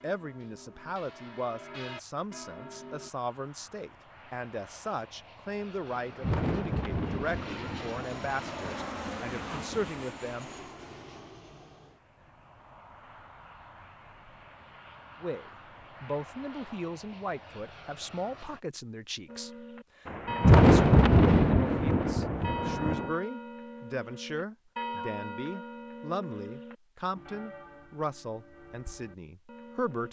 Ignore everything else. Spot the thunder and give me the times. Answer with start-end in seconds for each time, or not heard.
5.8-9.9, 20.1-23.1.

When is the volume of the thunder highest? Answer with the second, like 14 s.
21 s.